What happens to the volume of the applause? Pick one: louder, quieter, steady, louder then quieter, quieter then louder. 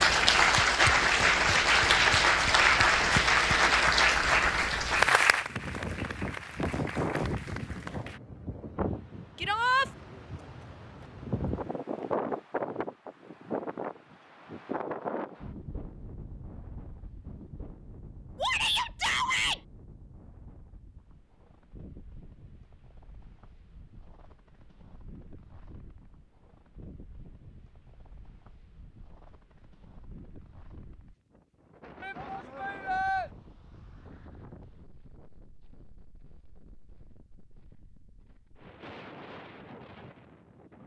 quieter.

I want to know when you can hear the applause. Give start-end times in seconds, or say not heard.
0.0-8.2.